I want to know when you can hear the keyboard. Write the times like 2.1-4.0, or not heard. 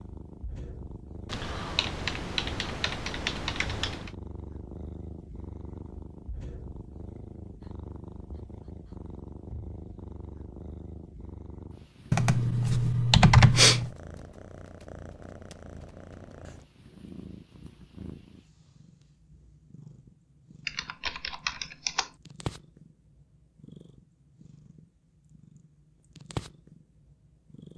1.2-4.1, 12.1-13.9, 20.6-22.1.